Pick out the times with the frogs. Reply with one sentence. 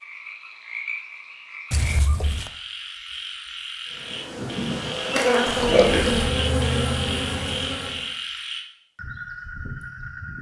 You can hear the frogs from 0.0 to 10.3 s.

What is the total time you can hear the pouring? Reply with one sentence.
The pouring can be heard for 2 seconds in total.